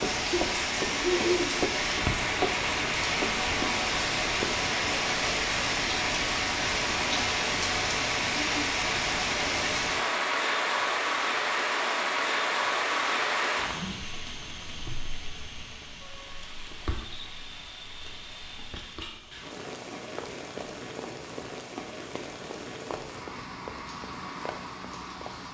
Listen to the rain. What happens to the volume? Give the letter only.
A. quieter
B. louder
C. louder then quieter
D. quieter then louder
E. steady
A.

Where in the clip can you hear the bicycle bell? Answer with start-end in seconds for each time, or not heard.
not heard.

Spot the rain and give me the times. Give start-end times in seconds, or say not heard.
0.0-25.5.